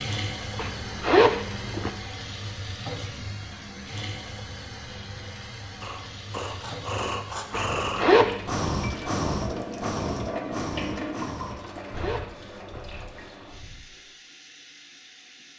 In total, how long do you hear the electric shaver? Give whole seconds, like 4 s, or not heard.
not heard.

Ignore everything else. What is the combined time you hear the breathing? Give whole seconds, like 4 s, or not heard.
8 s.